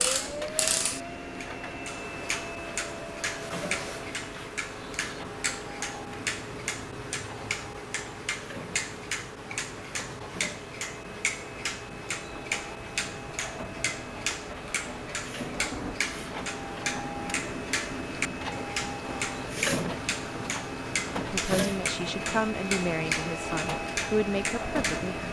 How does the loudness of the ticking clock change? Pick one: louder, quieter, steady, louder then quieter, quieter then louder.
steady.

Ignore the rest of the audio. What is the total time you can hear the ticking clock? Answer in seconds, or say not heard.
25 s.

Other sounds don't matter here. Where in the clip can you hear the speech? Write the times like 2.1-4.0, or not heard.
21.1-25.2.